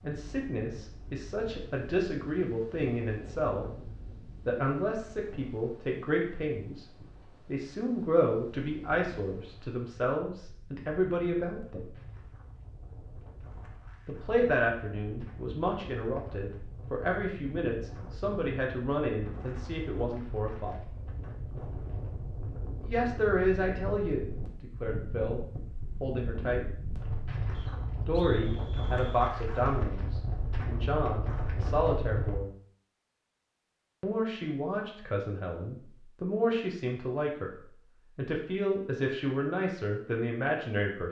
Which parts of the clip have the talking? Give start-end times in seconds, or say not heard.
0.0-11.9, 14.1-20.8, 22.8-26.6, 27.9-32.5, 34.0-41.0.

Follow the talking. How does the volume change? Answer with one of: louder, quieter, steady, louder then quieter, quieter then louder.
steady.